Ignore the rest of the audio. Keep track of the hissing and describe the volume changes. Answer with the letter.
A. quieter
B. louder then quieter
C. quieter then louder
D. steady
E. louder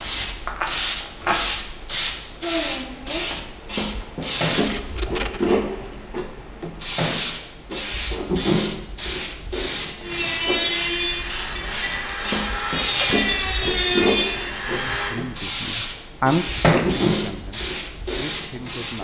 D.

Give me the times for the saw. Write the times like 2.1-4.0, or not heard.
10.0-15.2.